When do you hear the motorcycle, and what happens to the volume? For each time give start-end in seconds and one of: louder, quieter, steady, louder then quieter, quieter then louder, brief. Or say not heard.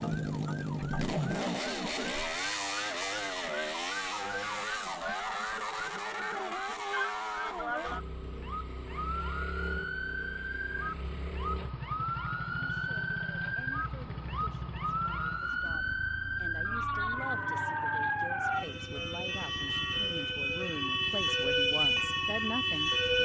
0.0-23.2 quieter.